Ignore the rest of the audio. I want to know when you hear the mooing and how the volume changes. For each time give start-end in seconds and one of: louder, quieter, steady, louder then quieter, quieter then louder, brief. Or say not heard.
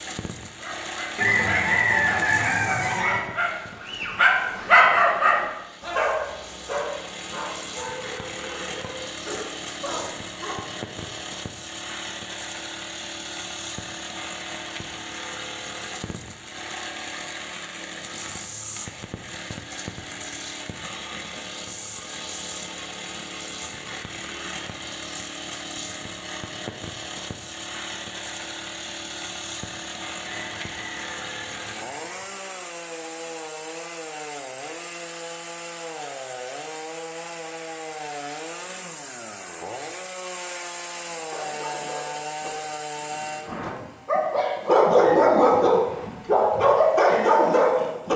not heard.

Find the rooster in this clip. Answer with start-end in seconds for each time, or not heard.
1.1-3.2, 30.2-32.2.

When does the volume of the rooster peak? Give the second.
2 s.